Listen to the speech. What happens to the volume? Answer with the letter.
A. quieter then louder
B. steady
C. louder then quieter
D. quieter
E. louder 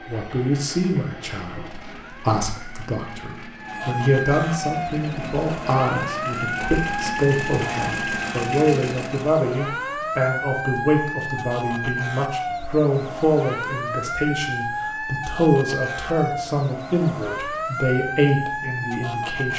B.